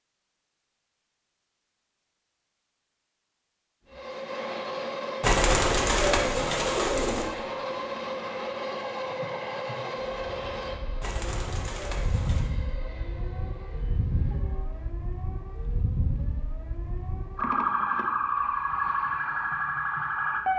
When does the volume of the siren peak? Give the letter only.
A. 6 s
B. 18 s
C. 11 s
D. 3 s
B.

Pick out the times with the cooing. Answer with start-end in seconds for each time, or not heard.
5.2-7.2, 11.0-12.5.